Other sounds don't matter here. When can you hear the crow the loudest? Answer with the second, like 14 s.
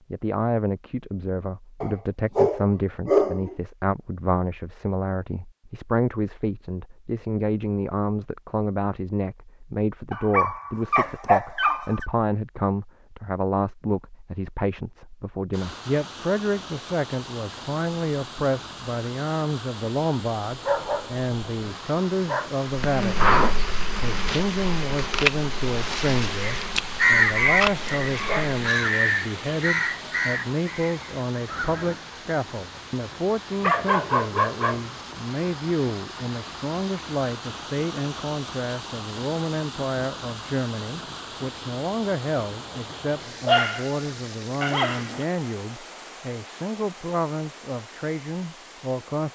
27 s.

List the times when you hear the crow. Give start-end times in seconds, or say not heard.
26.4-31.9.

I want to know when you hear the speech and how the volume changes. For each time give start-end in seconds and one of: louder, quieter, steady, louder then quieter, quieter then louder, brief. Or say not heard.
0.1-49.3 steady.